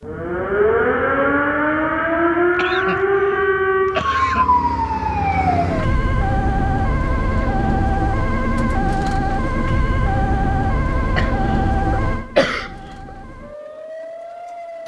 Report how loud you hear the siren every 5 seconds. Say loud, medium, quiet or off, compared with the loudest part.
loud, loud, medium.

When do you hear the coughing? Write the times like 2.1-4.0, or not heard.
2.5-4.5, 11.2-12.7.